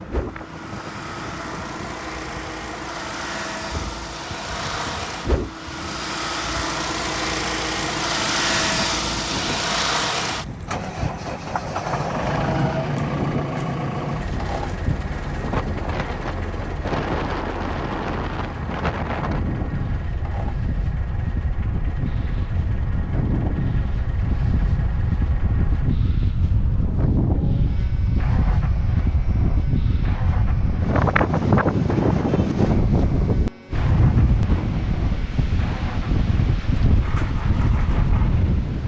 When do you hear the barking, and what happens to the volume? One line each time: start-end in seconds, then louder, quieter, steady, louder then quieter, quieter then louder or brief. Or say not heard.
not heard.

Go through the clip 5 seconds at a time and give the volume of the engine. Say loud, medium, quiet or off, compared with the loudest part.
medium, loud, loud, medium, quiet, quiet, quiet, quiet.